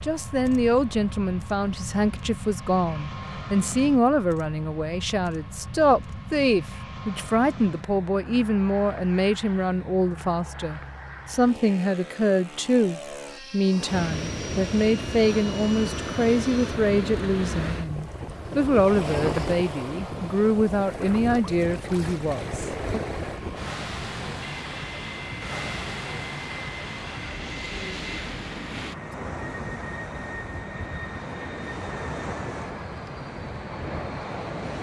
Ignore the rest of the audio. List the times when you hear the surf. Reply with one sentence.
You can hear the surf from 13.7 to 34.7 s.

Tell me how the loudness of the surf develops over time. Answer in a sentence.
The volume of the surf goes down.